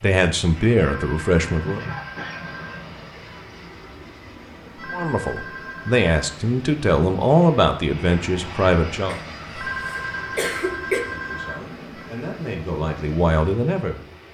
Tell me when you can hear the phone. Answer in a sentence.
You can hear the phone from 0.8 to 2.8 s, from 4.8 to 6.1 s and from 9.6 to 12.1 s.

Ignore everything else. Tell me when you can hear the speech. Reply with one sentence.
You can hear the speech from 0.0 to 1.9 s, from 4.9 to 9.2 s and from 11.1 to 14.0 s.